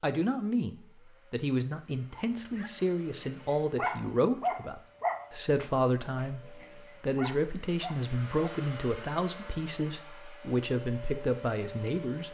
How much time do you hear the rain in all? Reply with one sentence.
You can't hear the rain here.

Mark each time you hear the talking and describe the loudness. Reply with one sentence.
You can hear the talking from 0.0 to 12.2 s, at a steady volume.